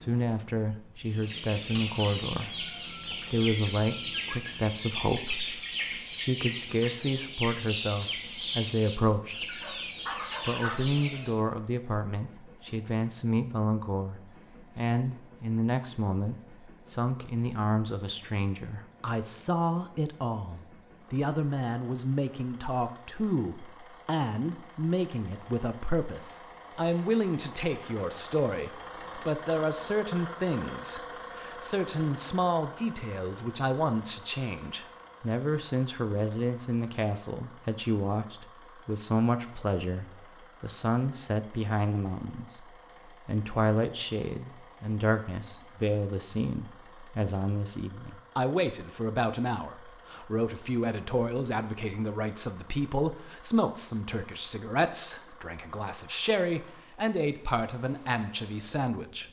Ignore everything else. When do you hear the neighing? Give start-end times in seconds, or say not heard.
not heard.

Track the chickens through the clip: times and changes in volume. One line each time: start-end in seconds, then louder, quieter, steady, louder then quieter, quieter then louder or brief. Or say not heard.
0.9-11.3 steady.